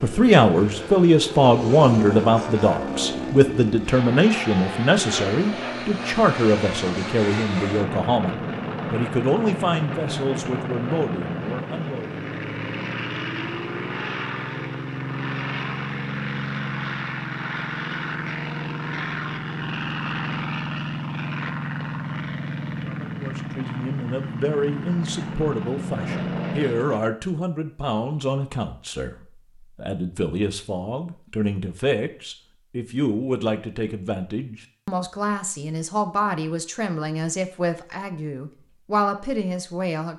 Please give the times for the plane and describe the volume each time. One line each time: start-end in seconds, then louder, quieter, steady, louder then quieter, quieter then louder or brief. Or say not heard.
0.0-27.1 steady.